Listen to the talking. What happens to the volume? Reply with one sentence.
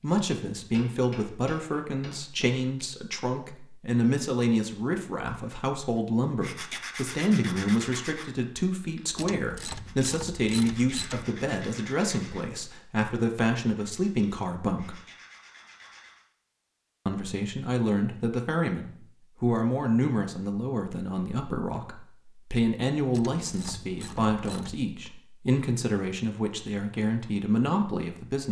The volume of the talking stays about the same.